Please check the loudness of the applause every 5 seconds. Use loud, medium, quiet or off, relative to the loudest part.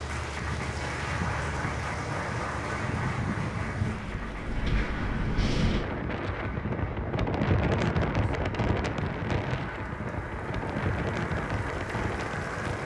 loud, medium, loud.